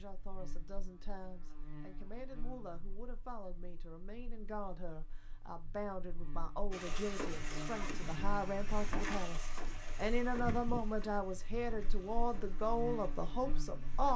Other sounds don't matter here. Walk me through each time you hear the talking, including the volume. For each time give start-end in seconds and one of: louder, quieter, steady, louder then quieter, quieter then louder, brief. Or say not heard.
0.0-14.1 louder.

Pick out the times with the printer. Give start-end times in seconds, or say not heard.
6.7-14.1.